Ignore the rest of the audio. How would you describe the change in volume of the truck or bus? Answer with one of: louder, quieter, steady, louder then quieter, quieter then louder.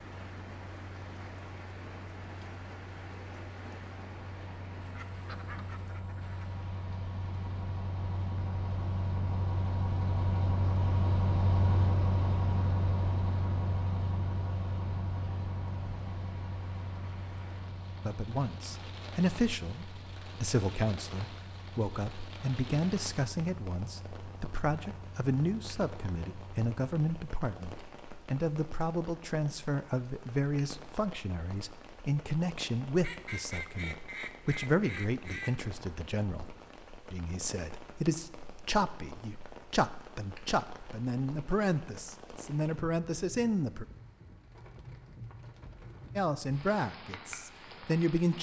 louder then quieter.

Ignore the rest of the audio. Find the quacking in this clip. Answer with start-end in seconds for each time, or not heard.
4.9-6.5, 33.0-35.5.